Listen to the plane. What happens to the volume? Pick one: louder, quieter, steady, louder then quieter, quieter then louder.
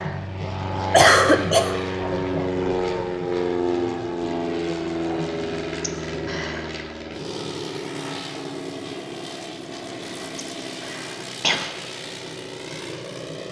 quieter.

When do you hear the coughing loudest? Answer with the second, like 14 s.
1 s.